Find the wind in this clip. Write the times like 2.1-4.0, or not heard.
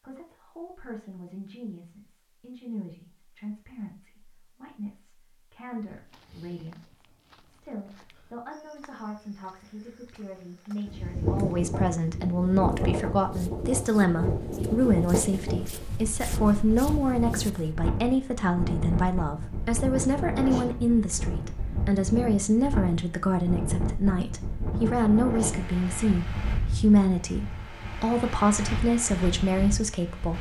10.8-30.3.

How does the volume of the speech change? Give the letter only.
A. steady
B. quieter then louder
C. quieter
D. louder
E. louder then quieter
D.